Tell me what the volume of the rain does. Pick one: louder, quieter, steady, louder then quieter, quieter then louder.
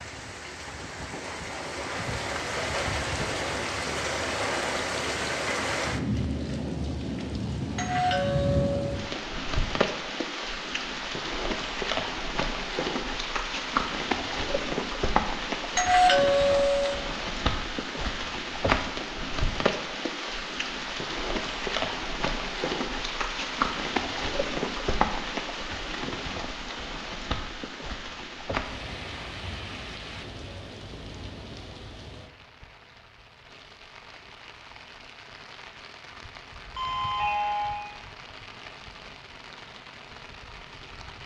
quieter.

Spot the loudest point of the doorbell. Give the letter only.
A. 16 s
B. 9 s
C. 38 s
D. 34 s
A.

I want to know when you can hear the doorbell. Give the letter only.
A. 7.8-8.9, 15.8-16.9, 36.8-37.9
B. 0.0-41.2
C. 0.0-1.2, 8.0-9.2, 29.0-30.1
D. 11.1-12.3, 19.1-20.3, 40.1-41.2
A.